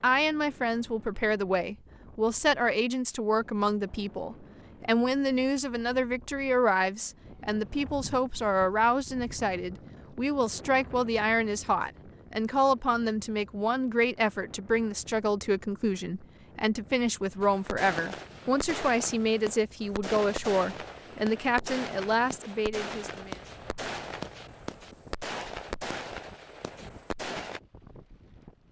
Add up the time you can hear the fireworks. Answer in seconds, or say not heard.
10 s.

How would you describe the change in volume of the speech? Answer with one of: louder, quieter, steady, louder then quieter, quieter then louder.
steady.